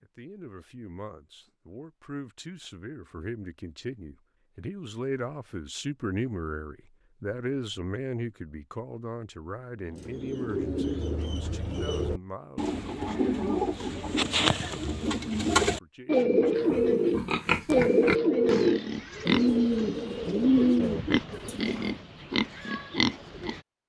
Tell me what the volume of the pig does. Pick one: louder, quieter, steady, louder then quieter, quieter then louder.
quieter then louder.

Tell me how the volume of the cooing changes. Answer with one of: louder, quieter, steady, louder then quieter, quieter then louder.
louder.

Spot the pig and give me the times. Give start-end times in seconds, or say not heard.
16.6-23.6.